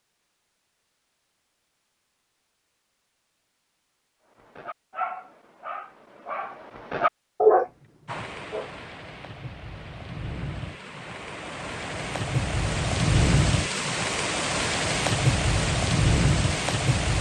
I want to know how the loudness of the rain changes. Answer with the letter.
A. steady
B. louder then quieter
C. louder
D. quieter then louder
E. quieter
C.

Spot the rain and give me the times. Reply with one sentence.
You can hear the rain from 8.1 to 17.1 s.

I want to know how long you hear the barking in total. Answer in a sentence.
You can hear the barking for 4 seconds altogether.